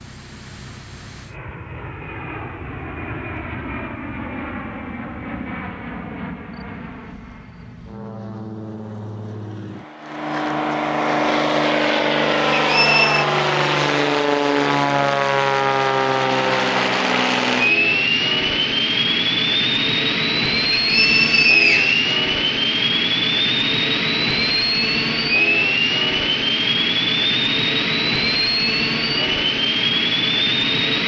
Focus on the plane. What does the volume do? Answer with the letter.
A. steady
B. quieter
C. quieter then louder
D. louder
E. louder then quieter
D.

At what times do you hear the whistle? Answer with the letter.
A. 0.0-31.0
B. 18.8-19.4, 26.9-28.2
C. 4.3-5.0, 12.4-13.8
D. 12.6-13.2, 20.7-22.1
D.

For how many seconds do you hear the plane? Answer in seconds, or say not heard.
31 s.